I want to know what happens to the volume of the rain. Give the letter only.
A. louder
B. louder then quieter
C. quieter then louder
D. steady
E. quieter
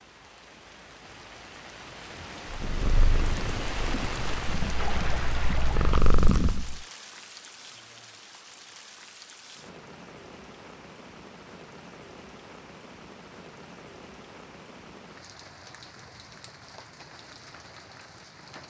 E.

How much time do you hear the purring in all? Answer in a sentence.
The purring can be heard for 4 seconds in total.